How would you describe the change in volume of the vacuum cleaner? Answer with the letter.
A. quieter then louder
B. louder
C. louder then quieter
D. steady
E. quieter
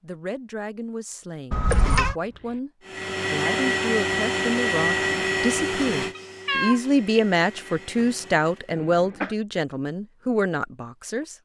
E.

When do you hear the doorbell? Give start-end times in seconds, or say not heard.
not heard.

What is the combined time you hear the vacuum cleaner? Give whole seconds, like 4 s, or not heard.
6 s.